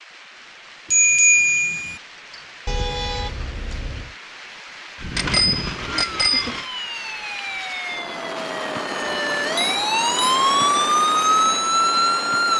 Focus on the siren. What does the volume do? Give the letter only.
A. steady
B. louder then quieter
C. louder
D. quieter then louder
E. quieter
C.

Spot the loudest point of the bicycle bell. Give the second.
1 s.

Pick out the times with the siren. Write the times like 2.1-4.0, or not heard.
5.0-12.5.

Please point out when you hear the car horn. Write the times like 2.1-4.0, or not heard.
2.6-4.2.